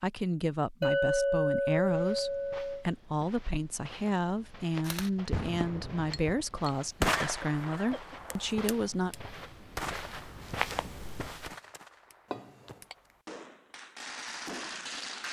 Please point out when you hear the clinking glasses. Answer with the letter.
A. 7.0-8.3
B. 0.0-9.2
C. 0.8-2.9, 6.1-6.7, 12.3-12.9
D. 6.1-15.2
C.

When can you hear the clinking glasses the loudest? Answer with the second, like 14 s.
1 s.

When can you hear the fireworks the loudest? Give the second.
7 s.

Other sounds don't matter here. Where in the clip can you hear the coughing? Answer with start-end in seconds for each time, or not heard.
7.0-8.3.